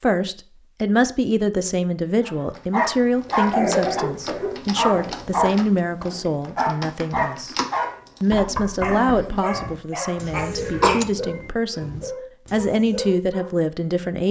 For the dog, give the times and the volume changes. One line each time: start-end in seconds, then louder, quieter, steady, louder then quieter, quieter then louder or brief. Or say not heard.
2.2-13.5 quieter.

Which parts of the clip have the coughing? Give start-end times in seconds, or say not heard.
3.2-5.2, 10.3-11.0.